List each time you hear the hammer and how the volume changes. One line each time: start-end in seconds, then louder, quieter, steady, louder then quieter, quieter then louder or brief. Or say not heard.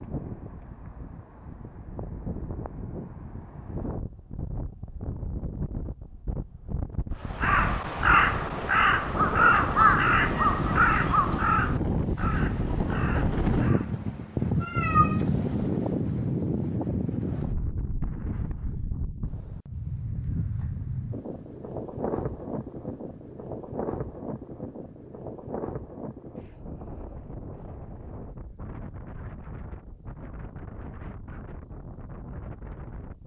not heard.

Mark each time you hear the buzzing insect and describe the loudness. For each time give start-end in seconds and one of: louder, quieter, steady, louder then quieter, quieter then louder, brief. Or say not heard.
not heard.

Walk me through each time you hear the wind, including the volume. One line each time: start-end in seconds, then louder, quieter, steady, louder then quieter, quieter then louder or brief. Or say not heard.
0.0-33.2 louder then quieter.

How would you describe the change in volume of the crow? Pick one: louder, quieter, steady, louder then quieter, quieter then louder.
quieter.